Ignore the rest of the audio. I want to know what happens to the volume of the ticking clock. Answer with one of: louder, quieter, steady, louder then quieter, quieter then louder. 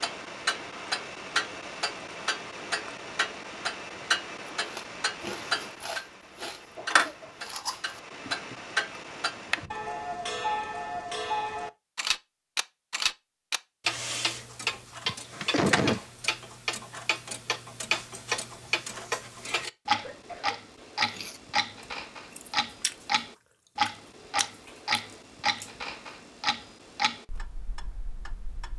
steady.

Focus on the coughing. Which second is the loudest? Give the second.
16 s.